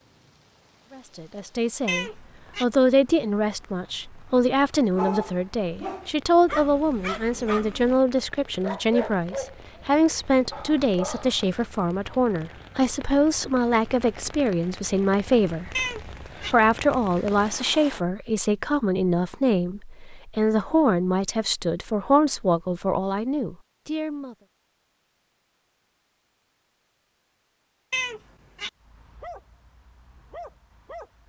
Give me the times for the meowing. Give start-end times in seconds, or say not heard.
1.9-2.6, 15.8-16.6, 27.9-28.7.